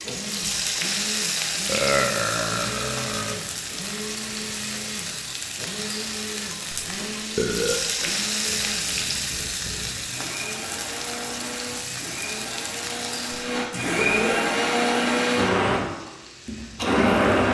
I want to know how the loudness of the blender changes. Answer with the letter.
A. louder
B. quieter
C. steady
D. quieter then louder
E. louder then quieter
A.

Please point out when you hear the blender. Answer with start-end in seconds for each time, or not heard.
0.0-17.5.